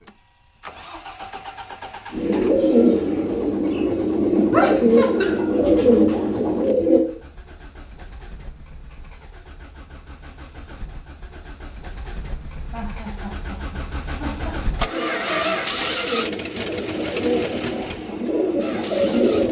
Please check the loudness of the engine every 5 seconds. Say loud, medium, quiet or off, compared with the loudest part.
medium, quiet, medium, loud.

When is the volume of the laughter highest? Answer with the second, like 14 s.
5 s.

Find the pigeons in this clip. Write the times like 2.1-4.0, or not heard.
2.1-7.0, 14.8-19.4.